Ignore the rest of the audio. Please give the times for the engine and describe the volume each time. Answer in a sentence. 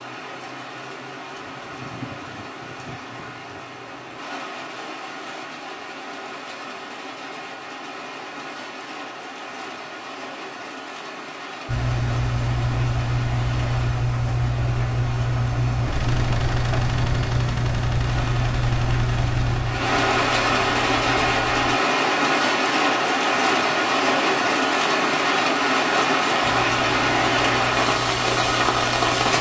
You can hear the engine from 11.7 to 21.8 s, getting quieter; and briefly from 26.4 to 29.3 s.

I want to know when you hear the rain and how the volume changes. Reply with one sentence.
You can hear the rain from 0.0 to 29.3 s, getting louder.